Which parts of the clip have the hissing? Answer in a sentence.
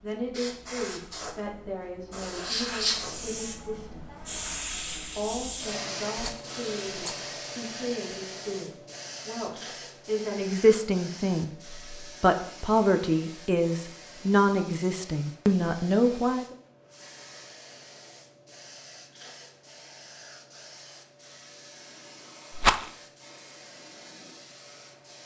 The hissing can be heard from 0.0 to 25.2 s.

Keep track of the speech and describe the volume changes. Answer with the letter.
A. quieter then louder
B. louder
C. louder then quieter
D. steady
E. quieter
B.